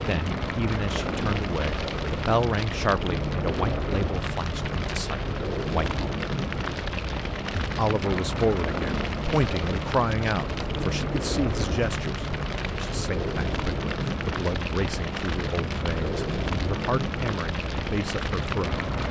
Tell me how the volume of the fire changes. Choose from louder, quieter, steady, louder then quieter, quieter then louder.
steady.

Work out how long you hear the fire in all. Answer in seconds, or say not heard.
19 s.